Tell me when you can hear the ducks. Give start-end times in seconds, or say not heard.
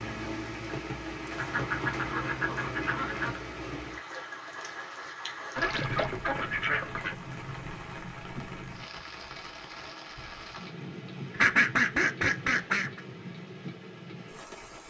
1.4-3.4, 5.5-7.2, 11.3-13.0.